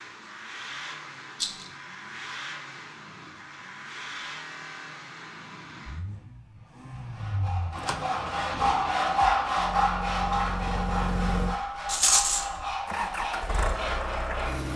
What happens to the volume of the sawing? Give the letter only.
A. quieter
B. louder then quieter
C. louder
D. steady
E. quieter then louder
B.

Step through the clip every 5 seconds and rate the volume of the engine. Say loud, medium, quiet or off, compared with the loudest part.
medium, medium, loud.